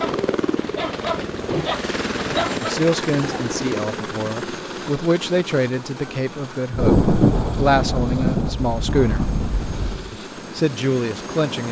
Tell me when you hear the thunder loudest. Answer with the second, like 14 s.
7 s.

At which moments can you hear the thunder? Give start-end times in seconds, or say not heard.
6.7-10.1.